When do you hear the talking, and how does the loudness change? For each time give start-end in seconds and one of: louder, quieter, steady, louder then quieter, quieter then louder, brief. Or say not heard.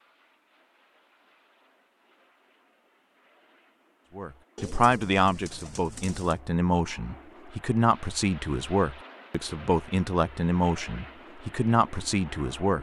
4.2-12.7 steady.